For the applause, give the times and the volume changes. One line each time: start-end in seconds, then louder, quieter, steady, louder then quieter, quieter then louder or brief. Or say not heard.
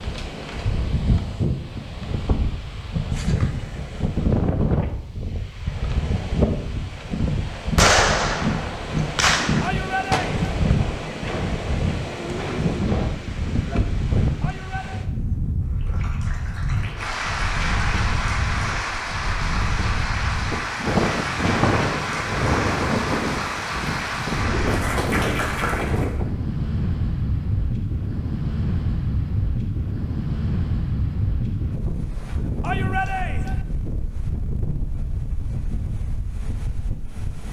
15.8-26.1 steady.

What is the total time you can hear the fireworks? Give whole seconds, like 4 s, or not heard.
5 s.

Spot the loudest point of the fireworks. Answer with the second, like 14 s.
8 s.